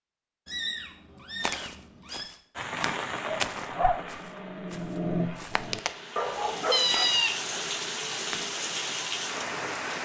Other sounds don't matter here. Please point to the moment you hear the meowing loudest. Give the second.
7 s.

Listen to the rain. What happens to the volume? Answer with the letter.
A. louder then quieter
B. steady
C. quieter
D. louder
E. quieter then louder
E.